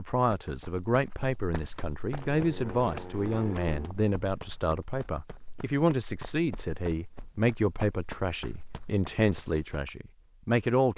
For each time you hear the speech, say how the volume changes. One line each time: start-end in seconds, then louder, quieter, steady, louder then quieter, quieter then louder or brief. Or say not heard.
0.0-10.9 steady.